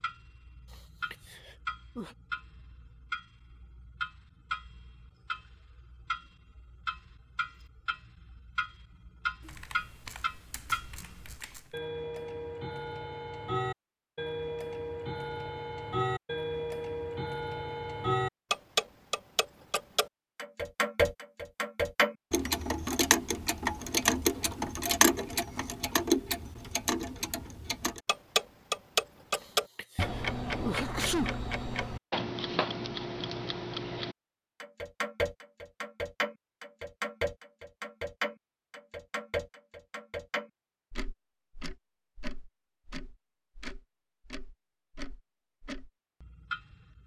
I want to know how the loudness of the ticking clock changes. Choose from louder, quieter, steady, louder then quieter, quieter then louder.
louder then quieter.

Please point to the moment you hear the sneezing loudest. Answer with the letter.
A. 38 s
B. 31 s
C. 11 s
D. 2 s
B.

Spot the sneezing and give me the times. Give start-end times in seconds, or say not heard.
0.7-2.1, 29.4-31.4.